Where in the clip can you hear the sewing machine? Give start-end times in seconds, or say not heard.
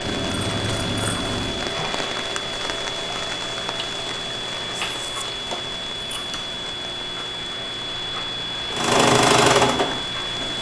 8.7-10.5.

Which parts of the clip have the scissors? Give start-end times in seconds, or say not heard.
0.0-1.8, 5.5-6.4.